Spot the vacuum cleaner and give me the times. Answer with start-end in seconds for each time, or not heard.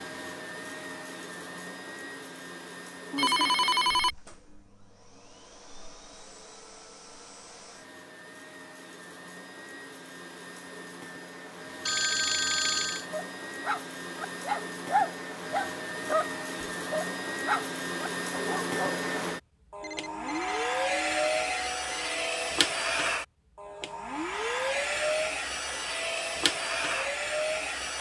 0.0-27.9.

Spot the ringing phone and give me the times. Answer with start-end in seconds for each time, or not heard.
3.1-4.2, 11.8-13.1, 19.8-22.5.